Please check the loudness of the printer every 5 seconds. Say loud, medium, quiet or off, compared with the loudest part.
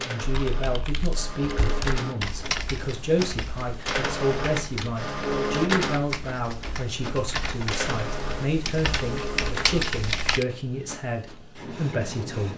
loud, loud, medium.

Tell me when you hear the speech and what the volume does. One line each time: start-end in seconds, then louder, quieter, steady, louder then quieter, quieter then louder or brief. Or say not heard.
0.0-12.5 steady.